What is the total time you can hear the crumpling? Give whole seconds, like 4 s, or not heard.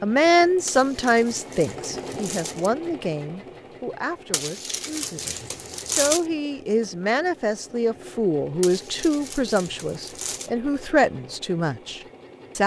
6 s.